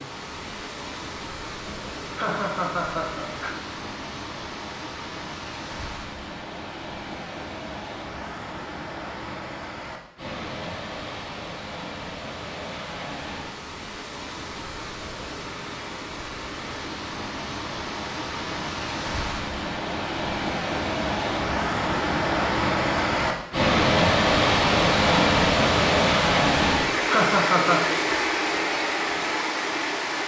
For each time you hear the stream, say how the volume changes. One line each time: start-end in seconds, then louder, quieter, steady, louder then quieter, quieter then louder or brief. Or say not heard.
0.0-30.2 louder.